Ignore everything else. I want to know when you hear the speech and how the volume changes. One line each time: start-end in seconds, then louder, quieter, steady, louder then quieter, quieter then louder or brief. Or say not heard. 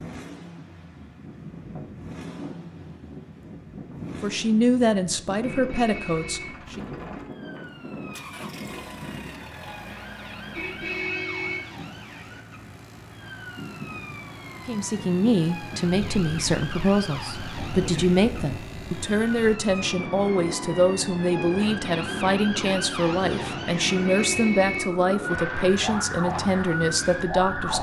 4.2-6.8 brief
14.7-27.7 steady.